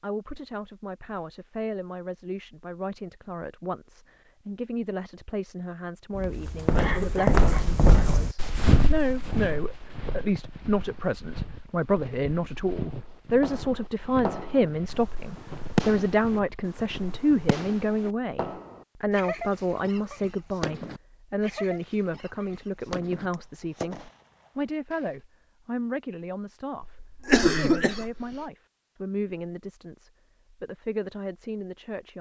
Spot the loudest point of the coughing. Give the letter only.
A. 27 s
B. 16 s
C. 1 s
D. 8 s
A.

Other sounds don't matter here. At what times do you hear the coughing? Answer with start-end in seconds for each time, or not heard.
6.8-7.7, 26.8-28.2.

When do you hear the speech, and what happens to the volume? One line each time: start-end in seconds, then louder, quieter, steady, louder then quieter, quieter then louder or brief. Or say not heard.
0.0-32.1 louder then quieter.